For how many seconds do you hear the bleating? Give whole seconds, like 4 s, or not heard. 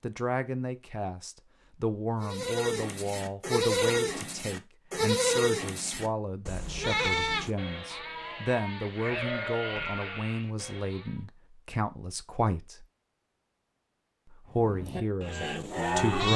11 s.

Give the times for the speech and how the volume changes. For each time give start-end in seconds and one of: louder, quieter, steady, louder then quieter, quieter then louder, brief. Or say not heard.
0.0-12.8 steady
14.5-16.3 brief.